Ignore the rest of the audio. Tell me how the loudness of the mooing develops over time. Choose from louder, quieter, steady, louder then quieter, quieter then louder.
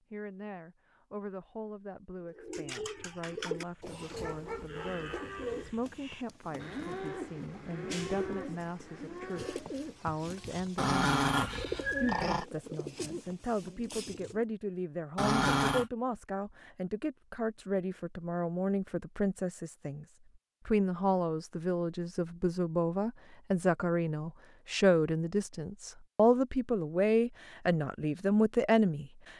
louder then quieter.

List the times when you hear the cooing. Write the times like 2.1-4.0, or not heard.
2.1-14.4.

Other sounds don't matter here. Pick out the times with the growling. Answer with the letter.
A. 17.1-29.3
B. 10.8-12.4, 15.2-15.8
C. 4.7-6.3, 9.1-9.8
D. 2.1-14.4
B.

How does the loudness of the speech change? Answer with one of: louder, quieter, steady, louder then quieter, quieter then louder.
louder.